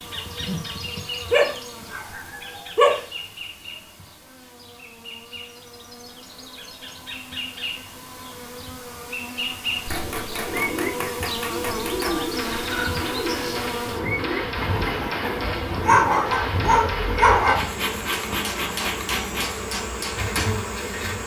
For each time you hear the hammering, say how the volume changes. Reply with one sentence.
You can hear the hammering from 9.8 to 20.5 s, at a steady volume.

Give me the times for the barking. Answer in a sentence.
The barking can be heard from 1.3 to 3.0 s and from 15.8 to 17.6 s.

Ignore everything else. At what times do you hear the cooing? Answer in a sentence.
The cooing can be heard from 9.9 to 17.4 s.